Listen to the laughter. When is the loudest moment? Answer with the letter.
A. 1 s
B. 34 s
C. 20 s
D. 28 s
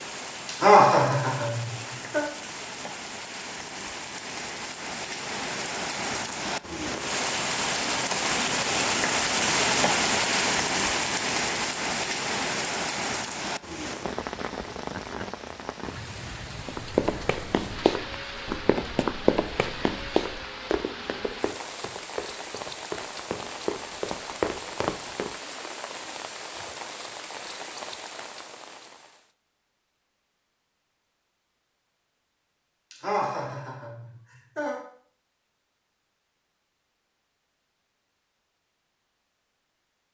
A.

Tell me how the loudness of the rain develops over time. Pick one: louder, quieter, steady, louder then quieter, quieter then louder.
louder then quieter.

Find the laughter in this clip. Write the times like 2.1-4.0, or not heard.
0.5-2.2, 32.9-34.8.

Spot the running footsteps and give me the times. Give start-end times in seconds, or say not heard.
16.6-25.3.